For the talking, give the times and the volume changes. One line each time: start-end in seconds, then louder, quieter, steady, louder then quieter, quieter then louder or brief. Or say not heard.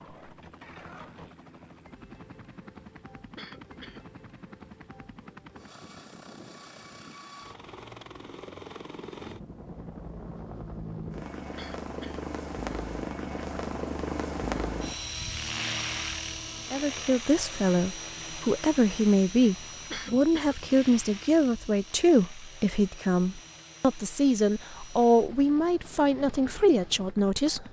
16.7-27.6 steady.